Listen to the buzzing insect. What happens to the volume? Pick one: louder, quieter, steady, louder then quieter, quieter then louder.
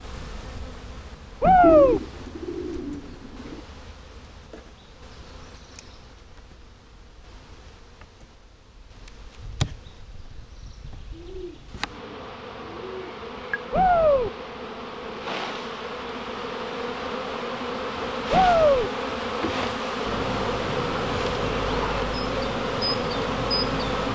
louder.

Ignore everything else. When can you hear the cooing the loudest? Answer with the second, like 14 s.
2 s.